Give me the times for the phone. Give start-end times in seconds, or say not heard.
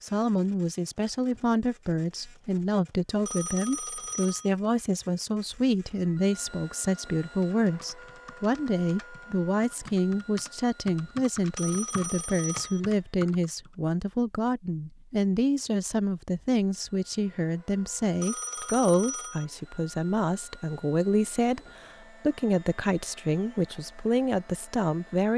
3.2-4.5, 11.6-12.8, 18.2-19.4.